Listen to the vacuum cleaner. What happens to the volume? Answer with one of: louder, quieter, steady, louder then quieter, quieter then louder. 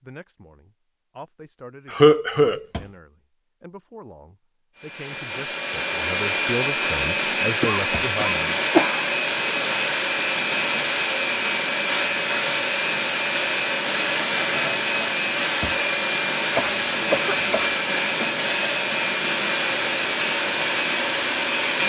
steady.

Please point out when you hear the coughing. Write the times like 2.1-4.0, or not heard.
1.9-2.6, 7.6-9.2, 16.6-17.7.